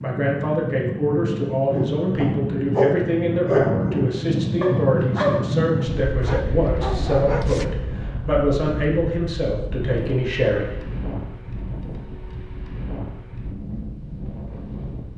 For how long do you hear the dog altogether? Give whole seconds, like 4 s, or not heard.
6 s.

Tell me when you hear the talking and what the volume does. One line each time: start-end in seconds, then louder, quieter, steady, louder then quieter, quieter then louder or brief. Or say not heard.
0.0-10.8 steady.